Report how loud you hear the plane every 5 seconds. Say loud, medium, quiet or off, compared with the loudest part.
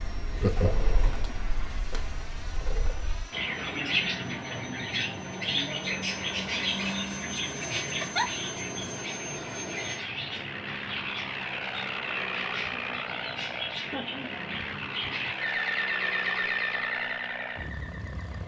medium, loud, loud, loud.